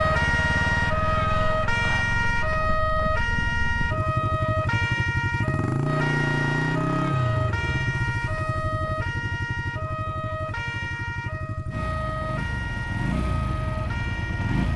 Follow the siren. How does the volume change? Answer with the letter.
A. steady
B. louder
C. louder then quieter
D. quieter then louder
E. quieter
E.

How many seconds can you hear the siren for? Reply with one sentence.
The siren can be heard for 15 seconds in total.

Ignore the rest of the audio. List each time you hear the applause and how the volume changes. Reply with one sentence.
The applause can't be heard in this clip.